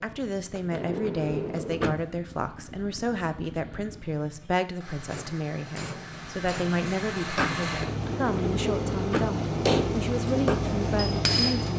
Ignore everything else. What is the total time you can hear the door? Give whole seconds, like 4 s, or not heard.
3 s.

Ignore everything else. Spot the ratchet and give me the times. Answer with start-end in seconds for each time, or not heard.
not heard.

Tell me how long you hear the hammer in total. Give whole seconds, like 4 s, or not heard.
5 s.